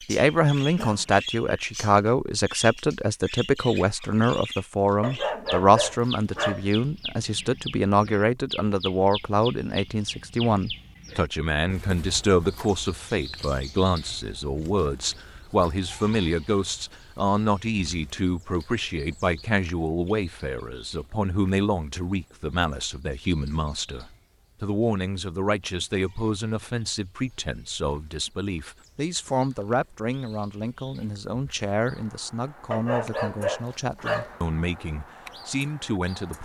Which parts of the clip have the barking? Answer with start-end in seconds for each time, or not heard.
5.0-6.7, 32.7-34.4.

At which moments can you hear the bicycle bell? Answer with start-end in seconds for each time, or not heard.
not heard.